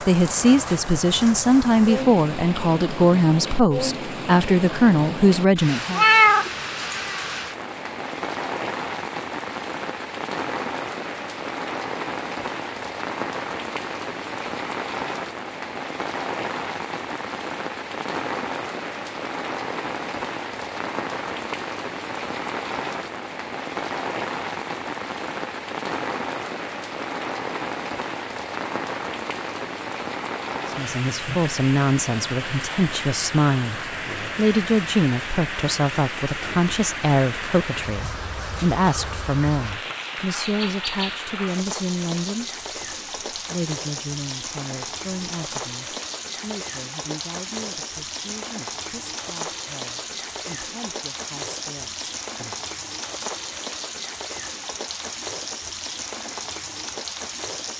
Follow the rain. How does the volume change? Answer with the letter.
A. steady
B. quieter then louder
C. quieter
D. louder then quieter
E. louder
A.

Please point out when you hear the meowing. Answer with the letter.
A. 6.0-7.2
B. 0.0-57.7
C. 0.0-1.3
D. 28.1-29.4
A.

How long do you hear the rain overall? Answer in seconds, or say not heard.
58 s.